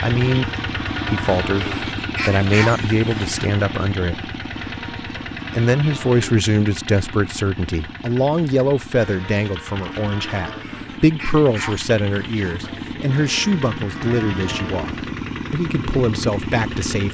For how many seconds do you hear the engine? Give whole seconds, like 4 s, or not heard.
17 s.